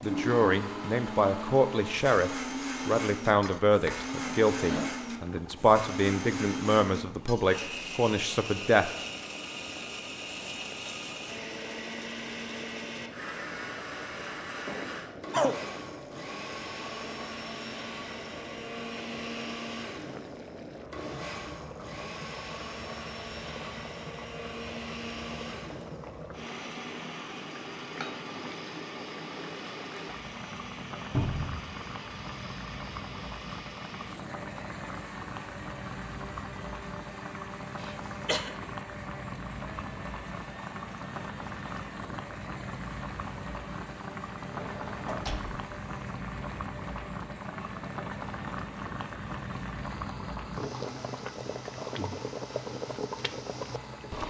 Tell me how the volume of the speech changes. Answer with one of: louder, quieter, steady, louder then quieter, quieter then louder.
steady.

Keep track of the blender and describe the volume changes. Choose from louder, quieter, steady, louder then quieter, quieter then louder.
quieter.